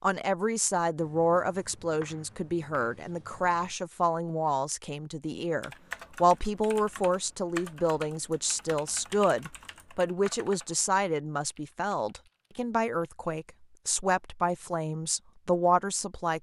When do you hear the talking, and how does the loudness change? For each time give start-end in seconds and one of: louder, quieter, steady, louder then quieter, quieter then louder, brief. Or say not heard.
0.0-16.3 steady.